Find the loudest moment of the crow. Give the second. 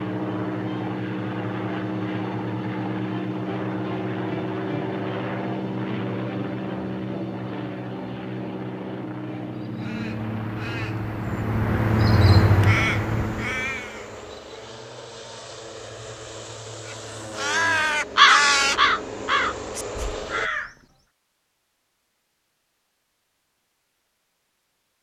18 s.